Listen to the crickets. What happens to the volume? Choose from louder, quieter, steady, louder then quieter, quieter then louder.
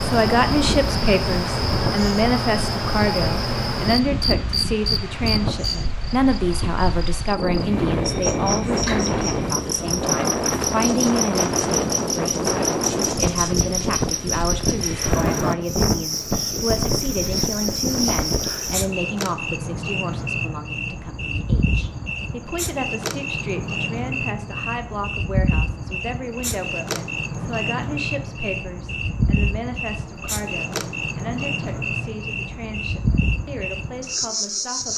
steady.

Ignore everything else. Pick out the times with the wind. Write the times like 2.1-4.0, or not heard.
0.1-18.6.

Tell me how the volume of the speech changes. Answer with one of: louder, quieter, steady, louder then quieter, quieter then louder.
quieter.